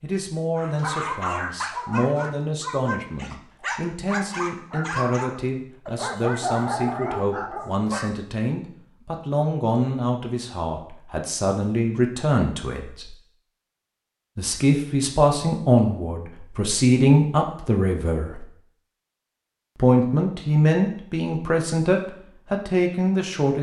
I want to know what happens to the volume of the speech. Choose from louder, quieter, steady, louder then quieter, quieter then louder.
louder.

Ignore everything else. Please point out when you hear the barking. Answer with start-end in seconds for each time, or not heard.
0.6-8.1.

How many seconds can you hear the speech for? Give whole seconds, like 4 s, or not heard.
21 s.